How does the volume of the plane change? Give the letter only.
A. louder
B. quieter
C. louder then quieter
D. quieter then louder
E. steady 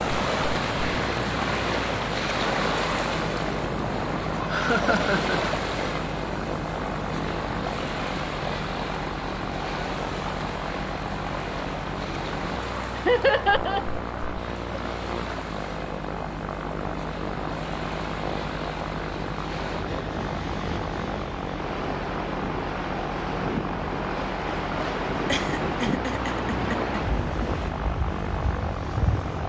E.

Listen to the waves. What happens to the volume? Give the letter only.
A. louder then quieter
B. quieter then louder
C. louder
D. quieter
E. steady
B.